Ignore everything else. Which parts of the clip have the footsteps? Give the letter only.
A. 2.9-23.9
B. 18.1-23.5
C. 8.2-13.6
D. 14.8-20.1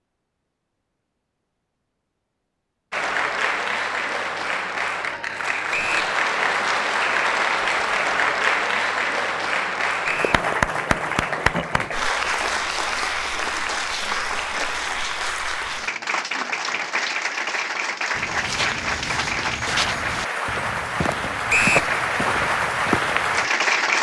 B.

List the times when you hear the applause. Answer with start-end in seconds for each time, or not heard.
2.9-23.9.